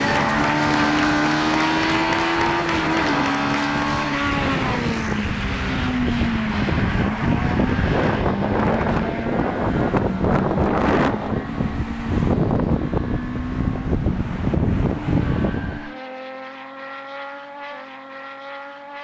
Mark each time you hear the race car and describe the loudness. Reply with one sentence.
You can hear the race car from 0.0 to 18.9 s, getting quieter.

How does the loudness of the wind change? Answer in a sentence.
The loudness of the wind goes up.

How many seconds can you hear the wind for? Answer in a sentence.
The wind can be heard for 16 seconds in total.